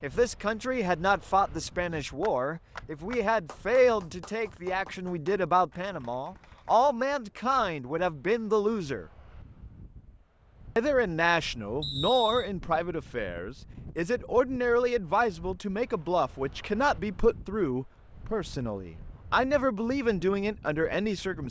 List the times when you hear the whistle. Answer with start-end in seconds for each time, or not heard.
11.8-12.5.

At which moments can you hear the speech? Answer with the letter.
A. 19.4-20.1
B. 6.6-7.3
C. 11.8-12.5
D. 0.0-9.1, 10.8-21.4
D.